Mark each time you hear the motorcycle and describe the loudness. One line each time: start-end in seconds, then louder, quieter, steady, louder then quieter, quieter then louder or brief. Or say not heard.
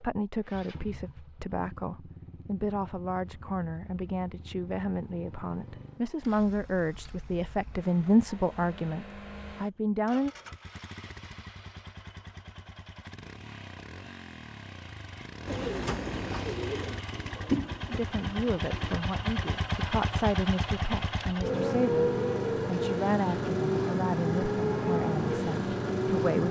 0.0-26.4 louder.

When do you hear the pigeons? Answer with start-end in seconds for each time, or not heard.
15.4-19.0.